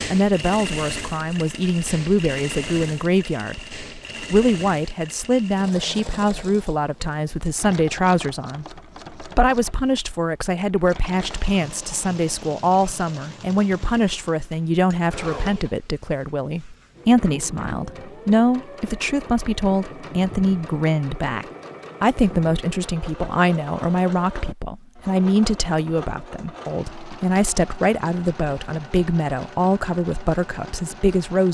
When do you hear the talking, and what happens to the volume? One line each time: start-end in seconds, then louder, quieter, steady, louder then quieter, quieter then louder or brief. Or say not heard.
0.0-31.4 steady.